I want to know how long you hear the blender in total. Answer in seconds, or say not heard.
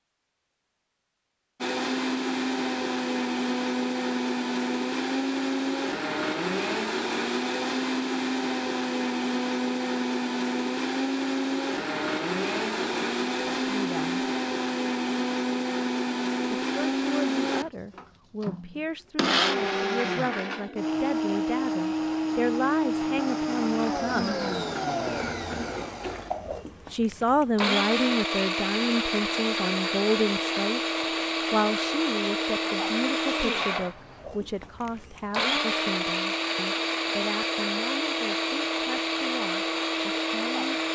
39 s.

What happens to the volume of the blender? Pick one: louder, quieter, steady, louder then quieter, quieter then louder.
steady.